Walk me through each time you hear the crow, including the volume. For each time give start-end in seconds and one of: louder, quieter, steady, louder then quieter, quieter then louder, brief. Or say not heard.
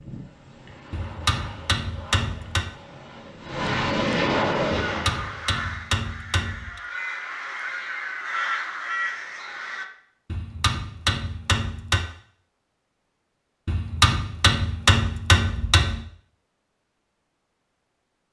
4.7-9.8 quieter then louder.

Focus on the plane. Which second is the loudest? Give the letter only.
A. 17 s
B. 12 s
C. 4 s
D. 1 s
C.